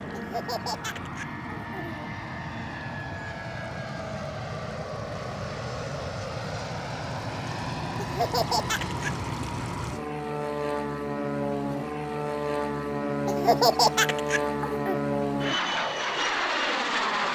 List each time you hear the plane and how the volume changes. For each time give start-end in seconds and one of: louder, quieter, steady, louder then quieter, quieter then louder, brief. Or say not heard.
0.0-17.3 louder.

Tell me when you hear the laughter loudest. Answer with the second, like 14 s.
14 s.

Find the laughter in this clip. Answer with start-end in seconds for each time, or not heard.
0.1-2.1, 8.0-9.1, 13.2-15.0.